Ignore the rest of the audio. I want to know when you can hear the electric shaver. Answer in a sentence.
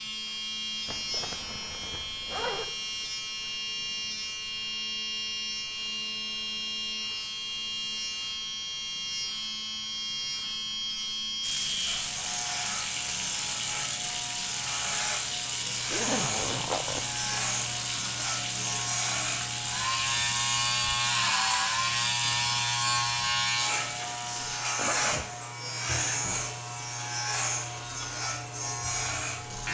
You can hear the electric shaver from 0.0 to 29.6 s.